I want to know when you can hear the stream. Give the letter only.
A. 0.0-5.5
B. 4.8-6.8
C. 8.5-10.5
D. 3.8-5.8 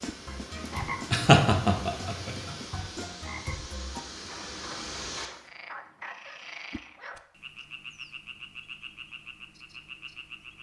A.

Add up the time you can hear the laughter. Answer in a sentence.
The laughter can be heard for 2 seconds in total.